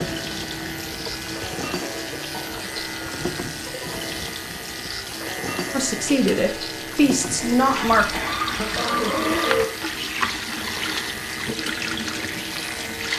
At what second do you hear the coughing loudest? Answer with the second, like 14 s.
9 s.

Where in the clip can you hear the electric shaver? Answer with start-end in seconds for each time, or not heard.
0.0-13.1.